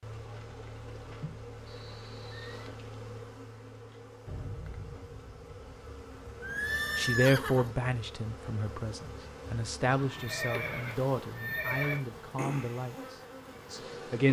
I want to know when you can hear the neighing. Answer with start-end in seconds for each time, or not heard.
1.6-2.7, 6.4-7.8, 10.1-12.0.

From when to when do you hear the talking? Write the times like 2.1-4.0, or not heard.
7.0-14.2.